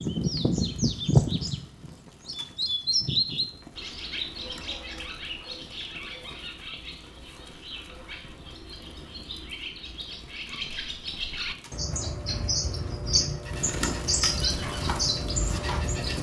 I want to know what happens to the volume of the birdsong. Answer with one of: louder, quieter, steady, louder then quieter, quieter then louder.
quieter then louder.